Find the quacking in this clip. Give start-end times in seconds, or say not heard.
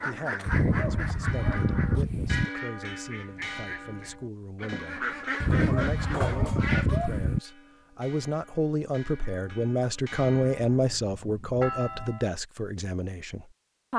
0.0-7.2.